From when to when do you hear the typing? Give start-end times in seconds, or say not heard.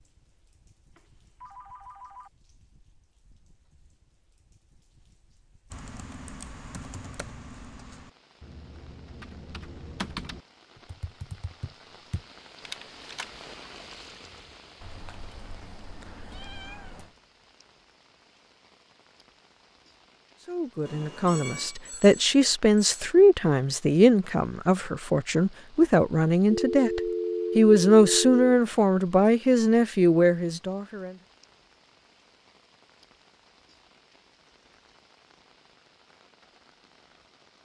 5.7-13.6.